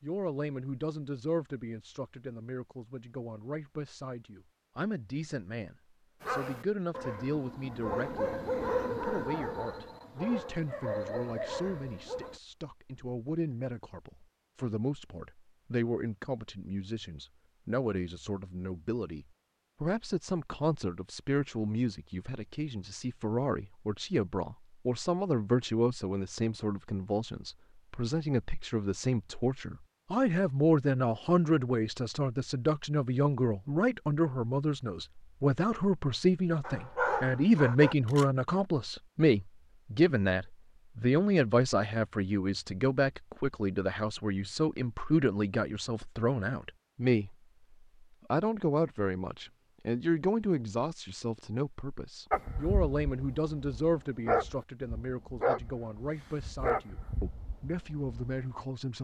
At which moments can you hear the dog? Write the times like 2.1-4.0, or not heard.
6.2-12.4, 36.6-38.2, 52.3-58.5.